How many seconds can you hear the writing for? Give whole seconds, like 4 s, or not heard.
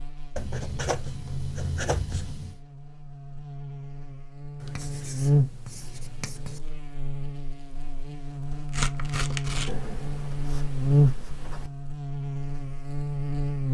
6 s.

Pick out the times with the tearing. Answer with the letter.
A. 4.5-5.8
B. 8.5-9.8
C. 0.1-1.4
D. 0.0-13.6
B.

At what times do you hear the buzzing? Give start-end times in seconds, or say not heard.
0.0-13.6.